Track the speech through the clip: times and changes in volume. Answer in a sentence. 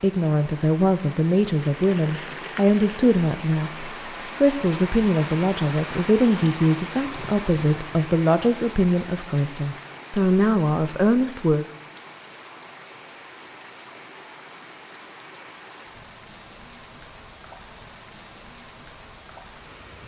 You can hear the speech from 0.0 to 11.7 s, at a steady volume.